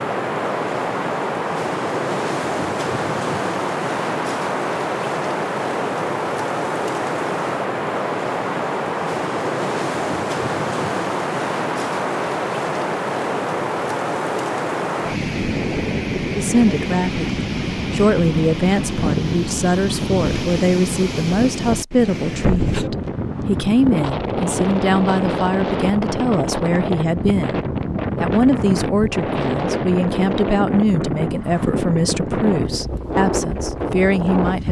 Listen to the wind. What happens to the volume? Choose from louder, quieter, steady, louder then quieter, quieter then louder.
steady.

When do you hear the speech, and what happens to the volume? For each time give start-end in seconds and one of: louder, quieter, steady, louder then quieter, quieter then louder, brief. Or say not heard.
16.4-34.6 steady.